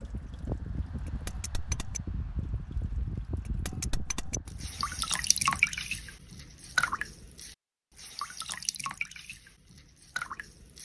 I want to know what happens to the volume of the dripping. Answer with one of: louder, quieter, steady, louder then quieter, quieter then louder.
louder then quieter.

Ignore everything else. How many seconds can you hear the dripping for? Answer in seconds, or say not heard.
11 s.